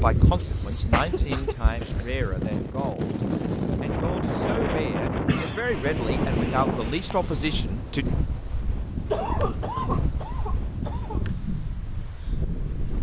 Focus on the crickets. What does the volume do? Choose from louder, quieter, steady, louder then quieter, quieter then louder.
quieter.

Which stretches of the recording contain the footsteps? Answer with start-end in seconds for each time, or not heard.
not heard.